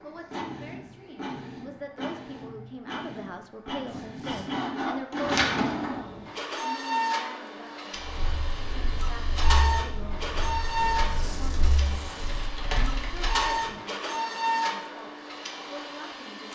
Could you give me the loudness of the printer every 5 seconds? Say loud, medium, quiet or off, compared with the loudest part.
medium, loud, loud, medium.